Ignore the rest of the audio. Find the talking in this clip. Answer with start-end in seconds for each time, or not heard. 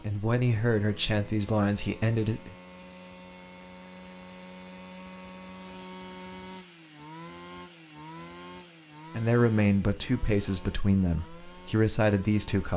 0.0-2.5, 9.1-12.7.